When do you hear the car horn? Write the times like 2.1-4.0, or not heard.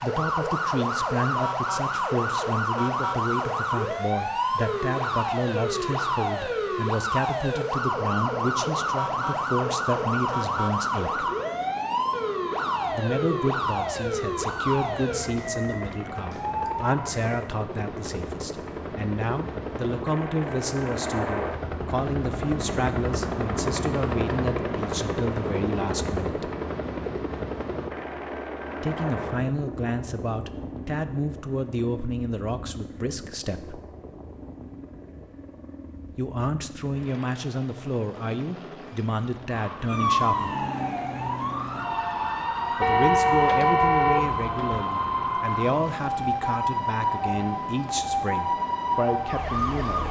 42.8-44.8.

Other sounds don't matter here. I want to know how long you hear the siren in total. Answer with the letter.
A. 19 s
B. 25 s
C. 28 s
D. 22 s
C.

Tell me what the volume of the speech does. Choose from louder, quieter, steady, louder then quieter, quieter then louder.
steady.